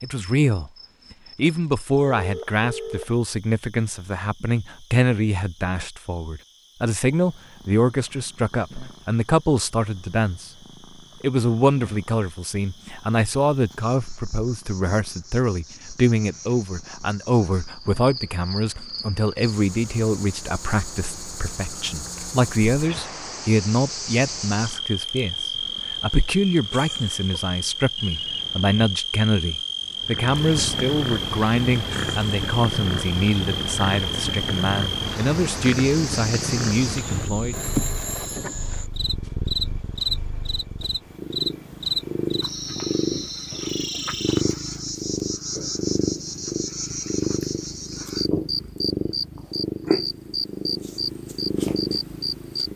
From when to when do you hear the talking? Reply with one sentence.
The talking can be heard from 0.0 to 0.7 s, from 1.4 to 10.5 s and from 11.2 to 37.5 s.